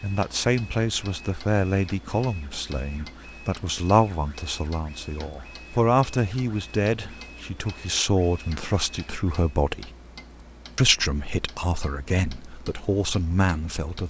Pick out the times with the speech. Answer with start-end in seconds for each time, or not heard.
0.0-9.9, 10.8-14.0.